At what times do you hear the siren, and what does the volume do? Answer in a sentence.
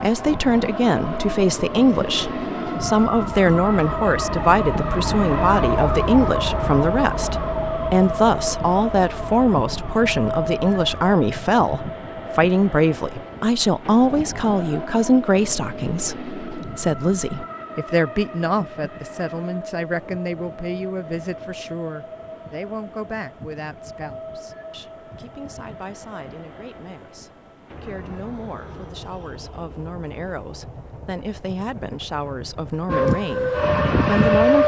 You can hear the siren from 0.0 to 11.1 s, getting louder then quieter; and briefly from 32.9 to 34.6 s.